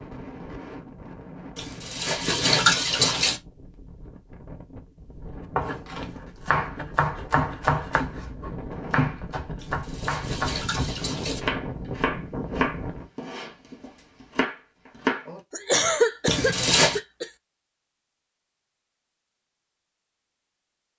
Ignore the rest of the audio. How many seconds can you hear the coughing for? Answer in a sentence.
You can hear the coughing for 2 seconds altogether.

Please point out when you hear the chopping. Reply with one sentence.
You can hear the chopping from 5.5 to 15.4 s.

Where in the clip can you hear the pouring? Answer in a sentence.
You can hear the pouring from 1.6 to 3.4 s, from 9.6 to 11.4 s and from 16.2 to 17.0 s.